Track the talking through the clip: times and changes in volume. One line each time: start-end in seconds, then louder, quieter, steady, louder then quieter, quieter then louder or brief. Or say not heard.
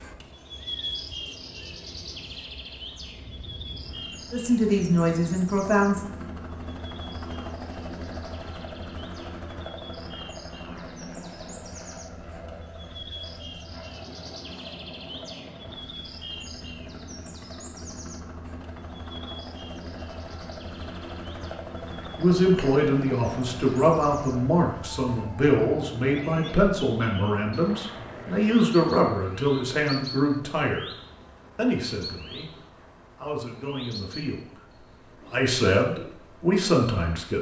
4.3-6.0 brief
22.1-30.9 steady
31.6-32.5 brief
33.1-37.3 louder.